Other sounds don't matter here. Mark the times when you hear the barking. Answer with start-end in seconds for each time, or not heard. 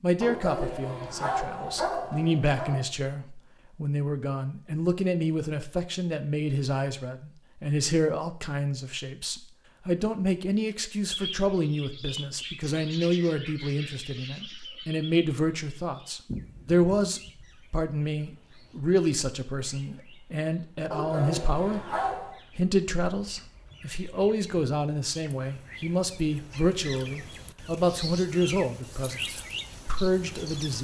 0.2-2.9, 20.9-22.4.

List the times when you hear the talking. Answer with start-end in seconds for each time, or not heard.
0.0-21.9, 22.6-30.7.